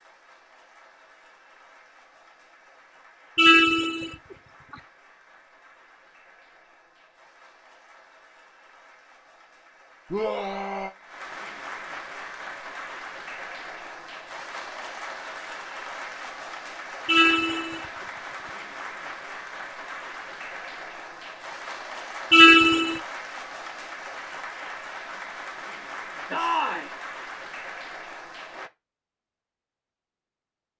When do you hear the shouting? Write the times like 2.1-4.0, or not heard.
10.1-10.9, 26.3-26.9.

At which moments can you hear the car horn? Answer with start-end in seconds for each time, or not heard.
3.4-4.2, 17.1-17.9, 22.3-23.0.